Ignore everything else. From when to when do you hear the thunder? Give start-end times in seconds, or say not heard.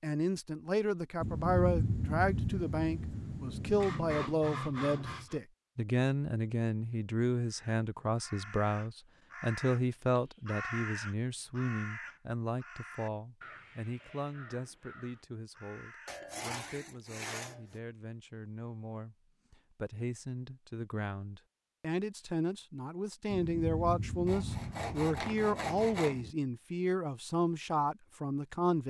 1.2-4.2, 23.3-26.4.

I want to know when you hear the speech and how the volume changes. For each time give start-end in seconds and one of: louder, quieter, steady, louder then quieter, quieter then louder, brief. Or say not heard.
0.0-28.8 quieter then louder.